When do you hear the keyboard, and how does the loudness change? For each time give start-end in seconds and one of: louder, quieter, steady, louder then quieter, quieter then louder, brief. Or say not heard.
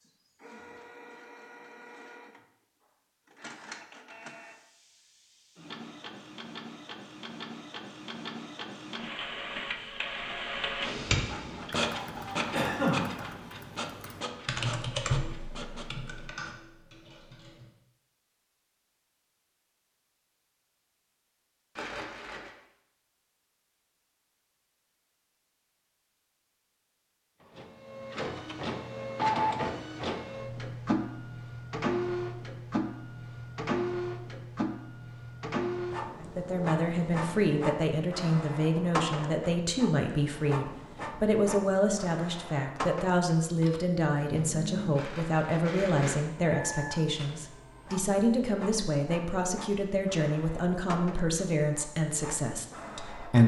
10.9-17.7 louder then quieter.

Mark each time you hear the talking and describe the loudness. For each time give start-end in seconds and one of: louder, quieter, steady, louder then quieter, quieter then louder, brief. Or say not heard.
36.2-53.4 steady.